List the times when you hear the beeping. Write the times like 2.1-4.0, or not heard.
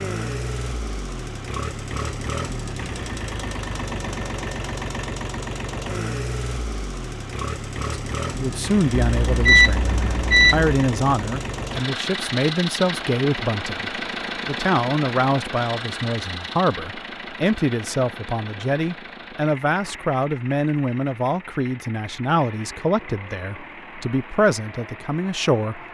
8.9-10.8.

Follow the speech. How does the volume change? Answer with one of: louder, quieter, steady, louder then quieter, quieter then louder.
steady.